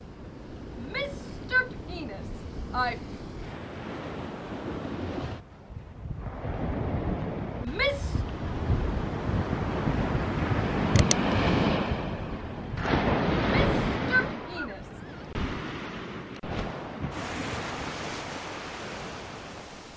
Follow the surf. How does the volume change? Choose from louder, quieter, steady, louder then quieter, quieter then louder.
louder then quieter.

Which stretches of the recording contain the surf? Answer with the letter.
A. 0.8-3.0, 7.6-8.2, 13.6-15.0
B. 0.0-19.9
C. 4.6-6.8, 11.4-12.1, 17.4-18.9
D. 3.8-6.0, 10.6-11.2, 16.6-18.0
B.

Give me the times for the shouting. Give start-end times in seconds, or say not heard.
0.8-3.0, 7.6-8.2, 13.6-15.0.